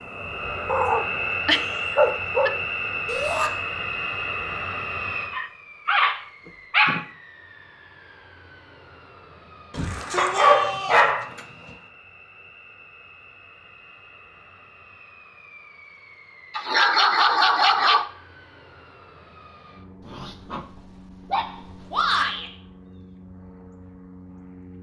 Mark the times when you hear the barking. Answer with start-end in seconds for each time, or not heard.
0.7-2.5, 5.3-7.0, 10.2-11.4, 16.6-18.1, 20.1-22.1.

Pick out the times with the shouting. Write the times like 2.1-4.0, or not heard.
3.0-3.5, 9.7-11.1, 21.9-22.5.